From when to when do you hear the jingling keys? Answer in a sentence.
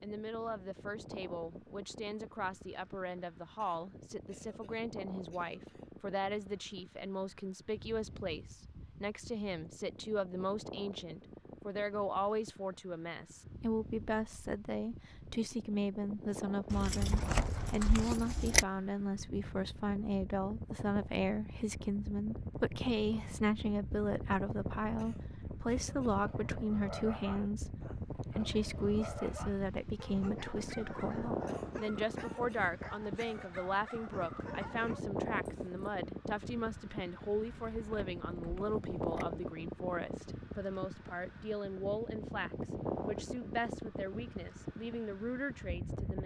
The jingling keys can be heard from 16.7 to 18.6 s and from 37.3 to 39.2 s.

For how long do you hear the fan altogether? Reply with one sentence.
The fan can be heard for 46 seconds in total.